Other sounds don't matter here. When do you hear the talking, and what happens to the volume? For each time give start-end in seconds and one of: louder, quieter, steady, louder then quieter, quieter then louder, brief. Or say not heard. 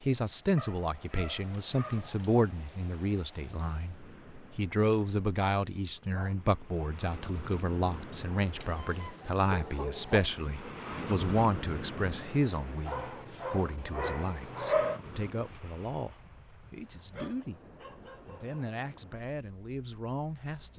0.0-17.6 quieter
18.2-20.7 brief.